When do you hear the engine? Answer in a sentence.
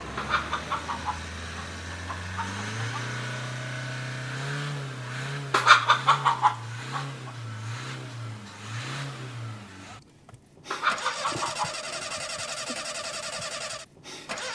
The engine can be heard from 0.0 to 14.5 s.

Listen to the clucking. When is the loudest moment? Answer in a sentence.
The volume of the clucking peaks at 6 seconds.